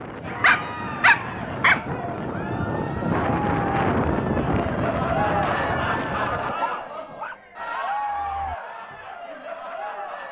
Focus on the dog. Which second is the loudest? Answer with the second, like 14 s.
1 s.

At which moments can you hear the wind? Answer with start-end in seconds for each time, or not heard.
0.0-6.5.